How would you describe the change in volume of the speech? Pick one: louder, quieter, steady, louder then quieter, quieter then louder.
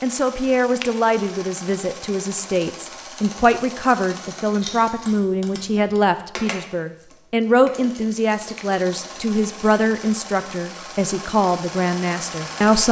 steady.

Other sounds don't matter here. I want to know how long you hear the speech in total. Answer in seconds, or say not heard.
13 s.